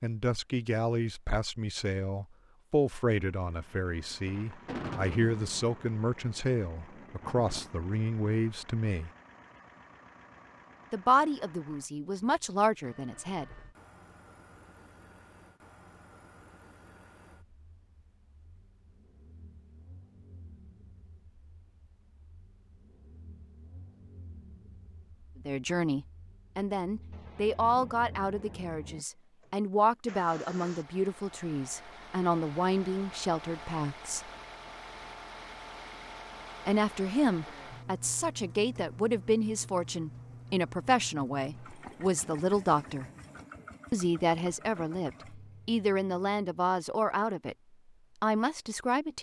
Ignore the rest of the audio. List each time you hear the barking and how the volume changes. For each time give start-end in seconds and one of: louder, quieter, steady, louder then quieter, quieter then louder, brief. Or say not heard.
not heard.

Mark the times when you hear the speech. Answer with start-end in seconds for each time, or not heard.
0.0-9.1, 10.9-13.4, 25.4-34.2, 36.6-43.1, 43.9-47.5, 48.2-49.1.